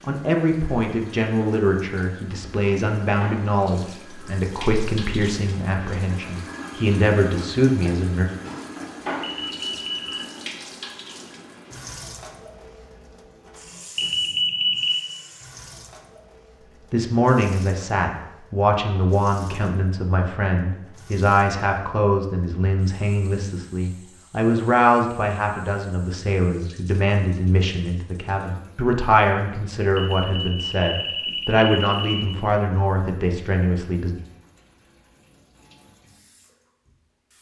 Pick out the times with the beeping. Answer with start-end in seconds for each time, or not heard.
9.2-10.2, 13.9-14.9, 29.9-32.4.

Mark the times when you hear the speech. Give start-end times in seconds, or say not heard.
0.0-8.2, 16.9-34.1.